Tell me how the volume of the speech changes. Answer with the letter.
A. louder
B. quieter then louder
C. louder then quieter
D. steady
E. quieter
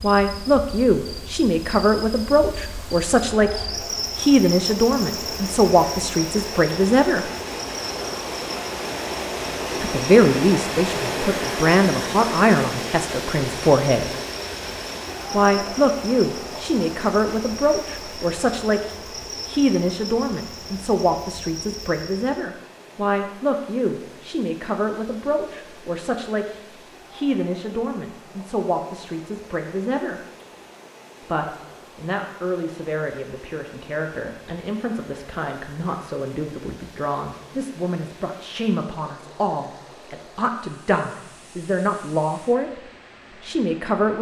E.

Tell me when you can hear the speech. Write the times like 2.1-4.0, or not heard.
0.0-7.3, 9.8-14.1, 15.3-30.2, 31.2-44.1.